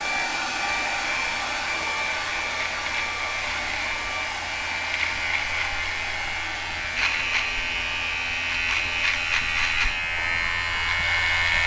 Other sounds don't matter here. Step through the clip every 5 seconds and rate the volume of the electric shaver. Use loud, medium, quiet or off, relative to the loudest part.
medium, loud, loud.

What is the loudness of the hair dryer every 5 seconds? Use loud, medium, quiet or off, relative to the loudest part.
loud, medium, medium.